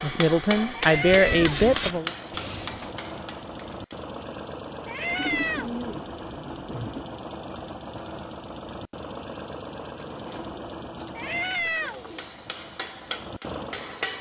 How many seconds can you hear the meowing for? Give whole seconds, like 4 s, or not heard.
3 s.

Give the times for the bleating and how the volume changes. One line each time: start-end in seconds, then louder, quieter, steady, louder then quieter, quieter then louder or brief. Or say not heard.
not heard.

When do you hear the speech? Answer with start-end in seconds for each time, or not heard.
0.0-2.1.